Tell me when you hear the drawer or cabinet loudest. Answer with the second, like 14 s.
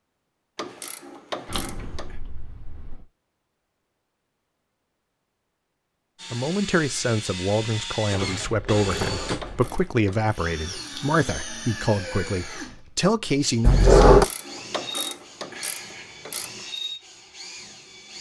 14 s.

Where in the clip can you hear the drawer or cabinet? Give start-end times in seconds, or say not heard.
1.4-3.0, 8.4-9.7, 13.7-14.2.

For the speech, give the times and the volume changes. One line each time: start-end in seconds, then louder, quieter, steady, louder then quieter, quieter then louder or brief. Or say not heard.
6.3-14.2 steady.